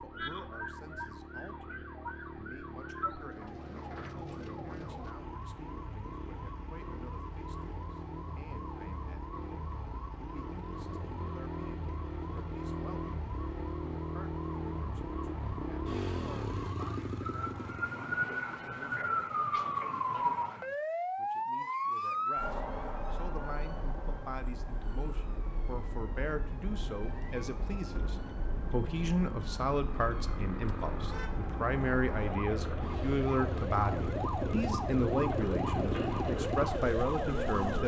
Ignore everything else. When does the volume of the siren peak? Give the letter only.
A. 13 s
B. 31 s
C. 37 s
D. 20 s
D.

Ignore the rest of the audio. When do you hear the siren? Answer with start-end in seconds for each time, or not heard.
0.0-37.8.